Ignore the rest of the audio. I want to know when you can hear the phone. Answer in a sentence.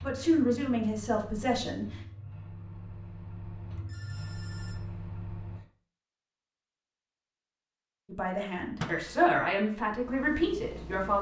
The phone can be heard from 3.9 to 4.8 s.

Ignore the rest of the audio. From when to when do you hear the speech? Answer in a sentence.
You can hear the speech from 0.0 to 1.9 s and from 8.1 to 11.1 s.